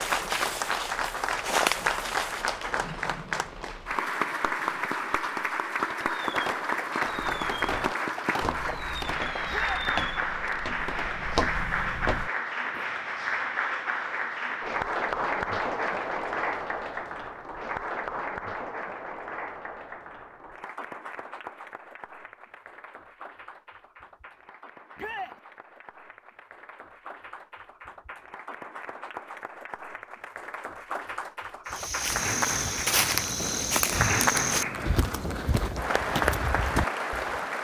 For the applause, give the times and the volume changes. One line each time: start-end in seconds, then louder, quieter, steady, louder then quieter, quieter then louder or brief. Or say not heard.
0.0-37.6 quieter then louder.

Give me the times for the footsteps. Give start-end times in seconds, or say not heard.
0.0-2.5, 7.0-12.8, 31.6-37.4.